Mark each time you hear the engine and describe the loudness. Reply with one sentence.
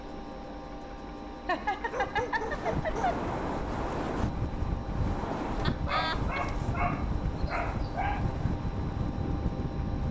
You can hear the engine from 0.0 to 10.0 s, at a steady volume.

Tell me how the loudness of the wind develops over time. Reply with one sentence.
The loudness of the wind stays about the same.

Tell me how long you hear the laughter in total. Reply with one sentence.
The laughter can be heard for 3 seconds in total.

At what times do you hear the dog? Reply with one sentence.
The dog can be heard from 1.9 to 3.2 s and from 5.7 to 8.2 s.